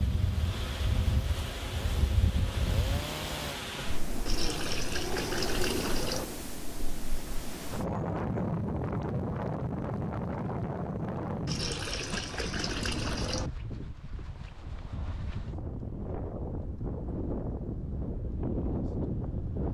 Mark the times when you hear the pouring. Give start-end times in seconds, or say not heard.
4.2-6.2, 11.4-13.5.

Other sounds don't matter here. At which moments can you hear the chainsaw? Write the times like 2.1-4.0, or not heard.
0.0-3.6.